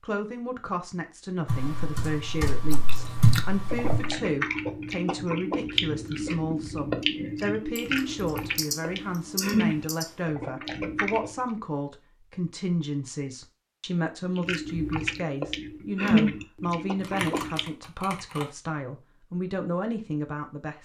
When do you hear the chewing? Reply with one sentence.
The chewing can be heard from 2.7 to 11.4 s and from 14.3 to 17.6 s.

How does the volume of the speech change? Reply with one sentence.
The volume of the speech stays about the same.